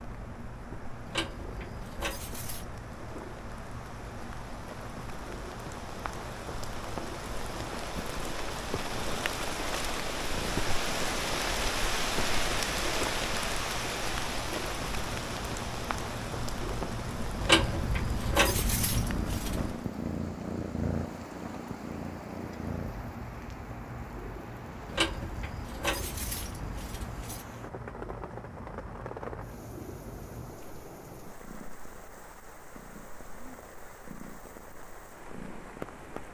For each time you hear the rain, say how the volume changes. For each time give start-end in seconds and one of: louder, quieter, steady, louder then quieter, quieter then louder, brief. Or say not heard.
0.0-36.2 louder then quieter.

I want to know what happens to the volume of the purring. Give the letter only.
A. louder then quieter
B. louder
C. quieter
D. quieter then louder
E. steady
A.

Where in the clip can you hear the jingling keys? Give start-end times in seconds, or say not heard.
1.1-2.6, 17.4-19.8, 24.9-27.4.